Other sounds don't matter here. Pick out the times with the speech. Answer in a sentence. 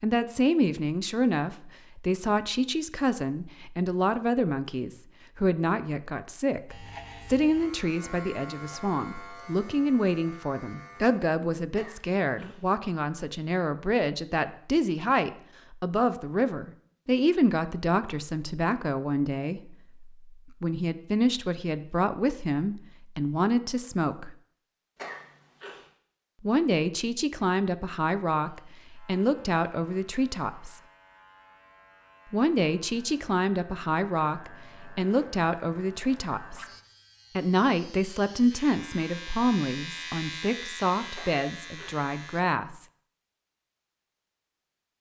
The speech can be heard from 0.0 to 24.4 s, from 26.4 to 30.8 s, from 32.3 to 36.6 s and from 37.4 to 42.9 s.